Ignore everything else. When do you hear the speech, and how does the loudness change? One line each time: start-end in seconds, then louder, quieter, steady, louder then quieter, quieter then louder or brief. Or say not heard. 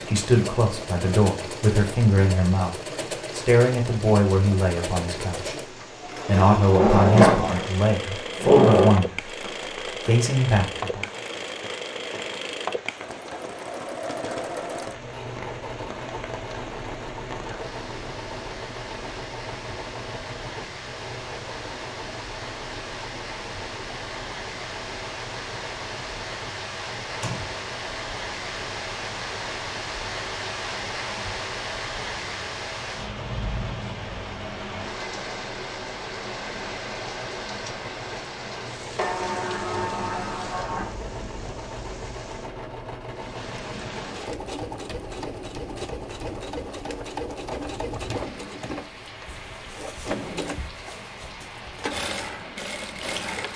0.0-11.1 steady.